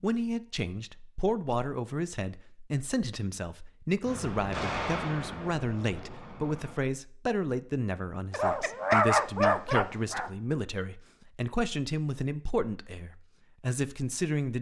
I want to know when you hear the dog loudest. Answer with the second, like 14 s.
9 s.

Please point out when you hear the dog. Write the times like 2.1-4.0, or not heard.
8.3-10.3.